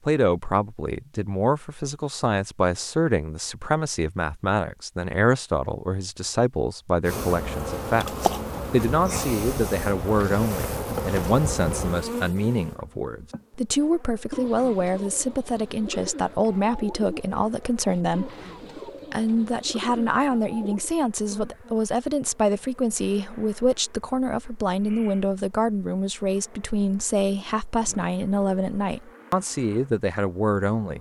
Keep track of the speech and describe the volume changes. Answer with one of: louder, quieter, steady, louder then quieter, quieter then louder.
steady.